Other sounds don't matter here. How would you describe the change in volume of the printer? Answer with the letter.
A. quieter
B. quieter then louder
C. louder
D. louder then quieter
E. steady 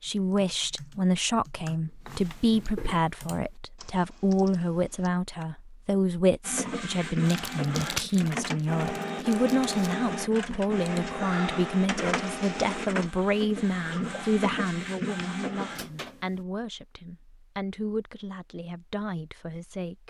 E.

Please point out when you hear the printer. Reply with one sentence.
The printer can be heard from 6.4 to 16.4 s.